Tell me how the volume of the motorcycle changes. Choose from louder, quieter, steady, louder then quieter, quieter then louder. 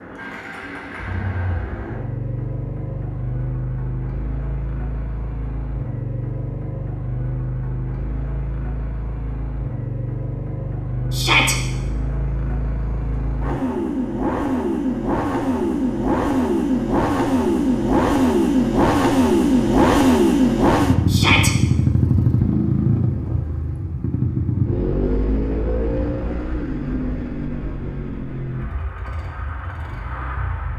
louder then quieter.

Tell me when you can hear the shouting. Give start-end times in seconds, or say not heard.
11.1-11.6, 21.1-21.5.